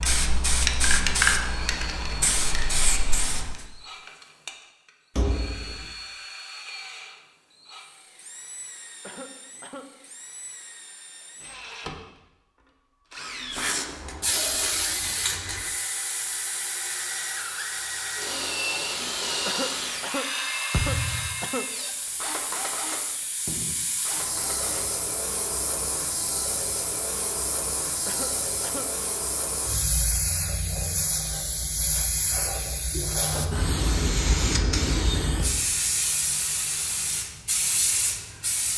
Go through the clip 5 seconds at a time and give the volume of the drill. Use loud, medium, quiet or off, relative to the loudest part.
medium, medium, medium, loud, loud, off, off, off.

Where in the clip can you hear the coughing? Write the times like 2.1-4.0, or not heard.
9.0-9.9, 19.4-21.8, 28.1-28.9.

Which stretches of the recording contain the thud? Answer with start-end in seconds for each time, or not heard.
5.2-6.0, 20.7-21.4, 35.4-35.9.